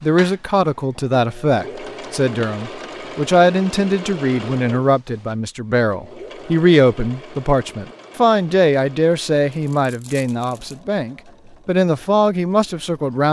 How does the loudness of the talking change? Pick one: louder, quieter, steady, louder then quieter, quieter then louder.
steady.